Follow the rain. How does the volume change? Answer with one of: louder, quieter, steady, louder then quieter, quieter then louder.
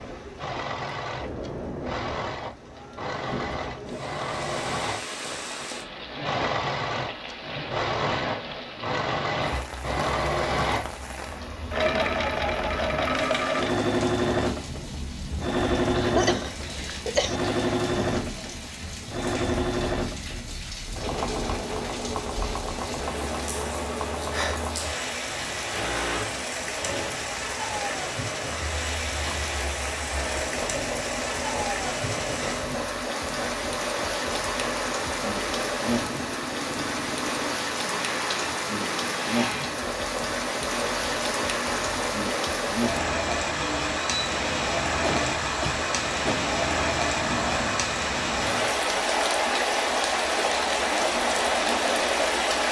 louder.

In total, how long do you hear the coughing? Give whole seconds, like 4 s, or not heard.
3 s.